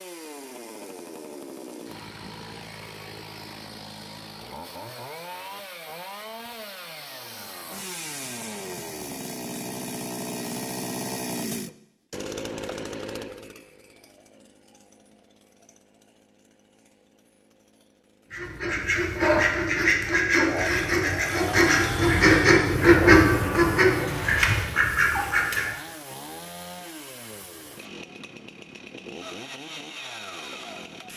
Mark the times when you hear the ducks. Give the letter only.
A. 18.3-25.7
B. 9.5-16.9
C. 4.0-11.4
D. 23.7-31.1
A.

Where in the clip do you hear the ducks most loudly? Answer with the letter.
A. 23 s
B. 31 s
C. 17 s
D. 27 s
A.